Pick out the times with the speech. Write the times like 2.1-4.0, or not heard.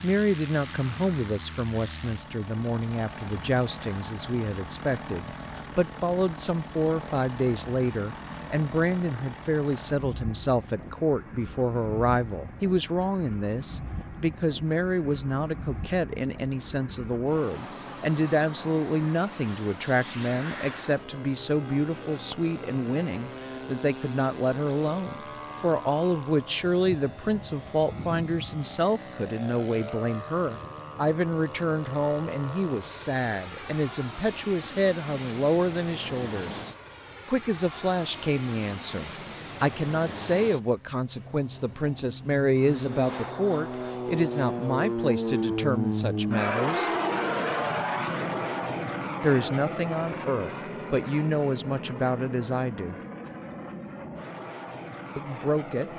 0.0-36.6, 37.2-46.9, 49.2-53.0, 55.1-55.9.